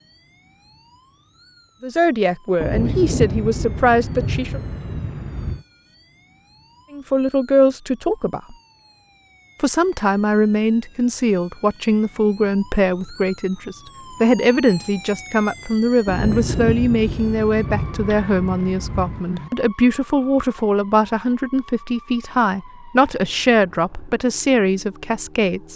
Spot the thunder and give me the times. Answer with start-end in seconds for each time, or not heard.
2.6-5.7, 16.1-19.5.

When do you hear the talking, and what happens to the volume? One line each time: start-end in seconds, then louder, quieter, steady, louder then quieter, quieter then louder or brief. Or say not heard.
1.8-4.6 brief
6.9-8.6 brief
9.6-25.7 steady.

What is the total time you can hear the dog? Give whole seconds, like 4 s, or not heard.
not heard.